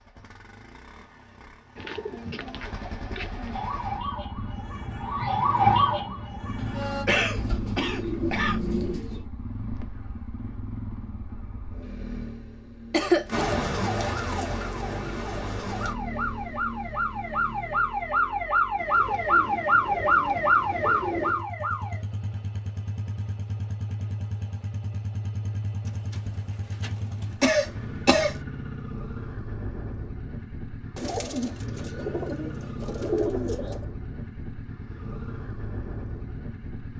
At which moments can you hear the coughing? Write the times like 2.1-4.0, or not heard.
6.6-8.6, 12.9-13.4, 27.4-28.4.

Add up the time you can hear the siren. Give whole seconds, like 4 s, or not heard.
12 s.